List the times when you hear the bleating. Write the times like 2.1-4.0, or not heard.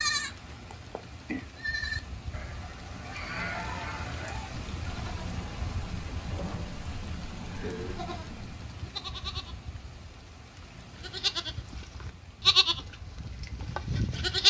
0.0-9.6, 10.9-14.4.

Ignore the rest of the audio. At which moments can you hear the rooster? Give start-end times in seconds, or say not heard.
3.0-4.6.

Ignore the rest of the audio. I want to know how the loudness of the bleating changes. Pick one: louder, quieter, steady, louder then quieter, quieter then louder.
quieter then louder.